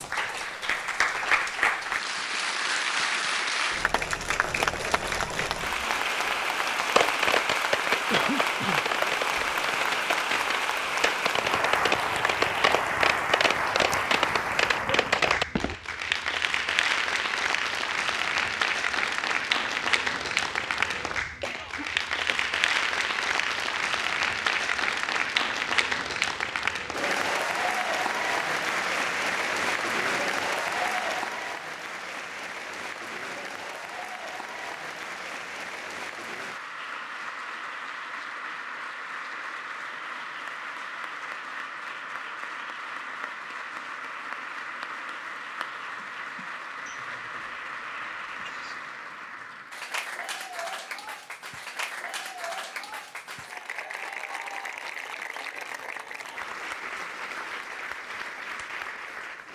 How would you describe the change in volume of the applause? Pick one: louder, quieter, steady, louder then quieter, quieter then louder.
quieter.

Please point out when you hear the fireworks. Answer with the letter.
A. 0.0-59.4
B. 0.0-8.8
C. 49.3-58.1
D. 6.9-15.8
D.